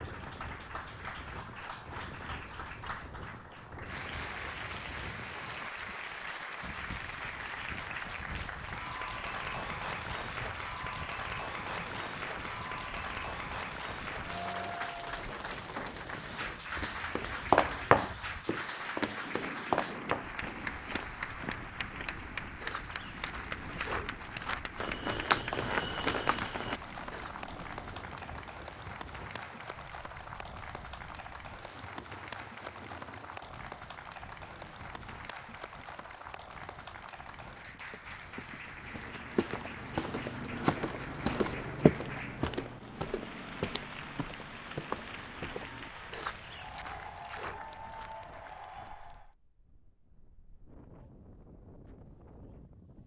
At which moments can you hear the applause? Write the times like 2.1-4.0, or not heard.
0.0-49.3.